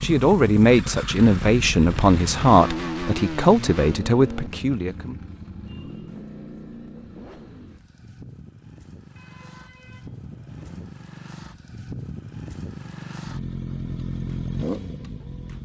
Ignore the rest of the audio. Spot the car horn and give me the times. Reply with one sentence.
You can hear the car horn from 9.2 to 10.9 s.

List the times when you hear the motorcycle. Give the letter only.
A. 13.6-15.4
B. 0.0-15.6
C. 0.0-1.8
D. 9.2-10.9
B.